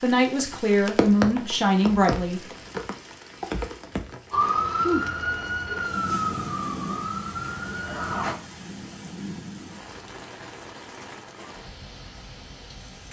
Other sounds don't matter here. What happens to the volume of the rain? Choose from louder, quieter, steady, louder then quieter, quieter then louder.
quieter.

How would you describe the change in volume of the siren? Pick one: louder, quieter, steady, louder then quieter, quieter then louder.
quieter.